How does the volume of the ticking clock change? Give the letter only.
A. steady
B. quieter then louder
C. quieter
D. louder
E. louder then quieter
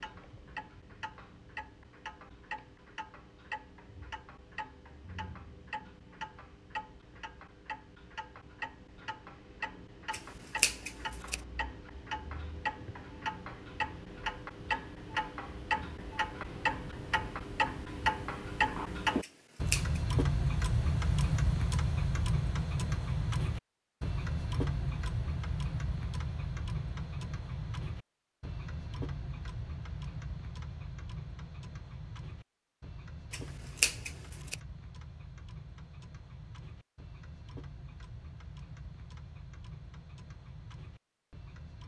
E.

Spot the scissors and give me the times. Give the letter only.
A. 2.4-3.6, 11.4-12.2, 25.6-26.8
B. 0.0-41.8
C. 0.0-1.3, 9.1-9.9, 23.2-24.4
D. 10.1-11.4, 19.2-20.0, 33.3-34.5
D.